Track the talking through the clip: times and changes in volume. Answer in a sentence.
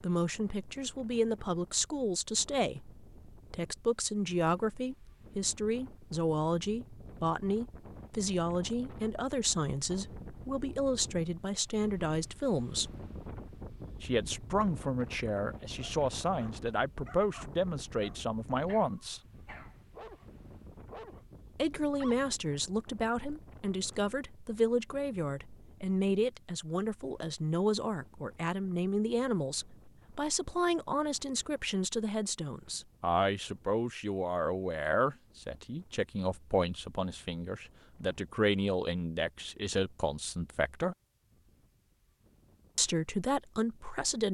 You can hear the talking from 0.0 to 12.9 s, at a steady volume; from 14.0 to 19.2 s, at a steady volume; from 21.6 to 41.0 s, at a steady volume; and briefly from 42.8 to 44.2 s.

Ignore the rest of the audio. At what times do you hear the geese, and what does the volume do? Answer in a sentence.
You can't hear the geese here.